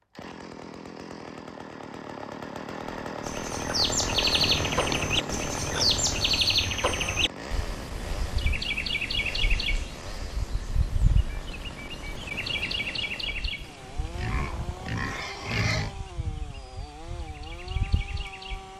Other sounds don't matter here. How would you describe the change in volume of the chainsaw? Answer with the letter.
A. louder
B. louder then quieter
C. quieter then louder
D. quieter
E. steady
D.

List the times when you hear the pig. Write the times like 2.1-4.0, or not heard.
4.3-6.4, 14.1-15.9.